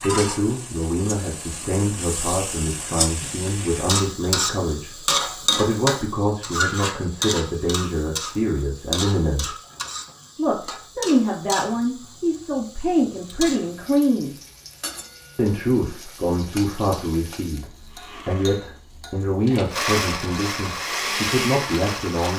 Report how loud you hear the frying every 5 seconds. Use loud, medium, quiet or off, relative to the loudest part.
loud, loud, medium, quiet, off.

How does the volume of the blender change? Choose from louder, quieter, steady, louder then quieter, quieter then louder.
louder.